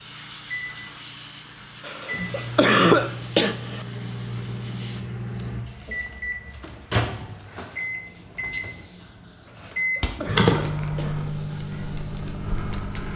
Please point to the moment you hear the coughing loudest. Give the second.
3 s.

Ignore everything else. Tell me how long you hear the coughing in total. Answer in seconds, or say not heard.
4 s.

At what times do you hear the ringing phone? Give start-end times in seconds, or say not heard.
10.2-10.8.